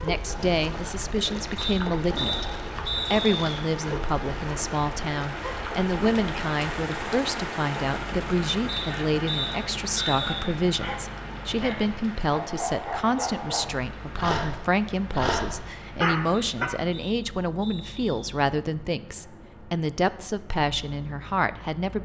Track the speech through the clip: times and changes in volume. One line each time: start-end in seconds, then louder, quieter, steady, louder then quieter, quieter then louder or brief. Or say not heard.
0.0-22.0 steady.